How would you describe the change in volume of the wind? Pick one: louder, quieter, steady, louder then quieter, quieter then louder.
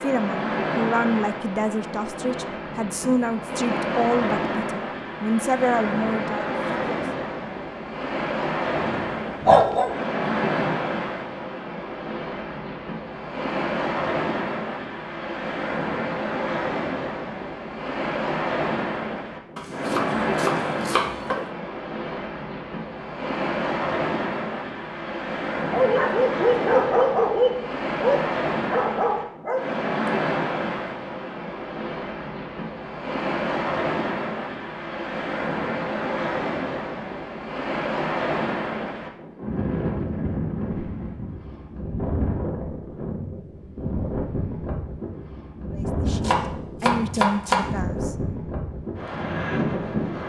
steady.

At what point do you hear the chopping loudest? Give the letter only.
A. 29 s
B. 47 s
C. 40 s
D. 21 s
B.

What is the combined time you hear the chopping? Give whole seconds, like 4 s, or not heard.
3 s.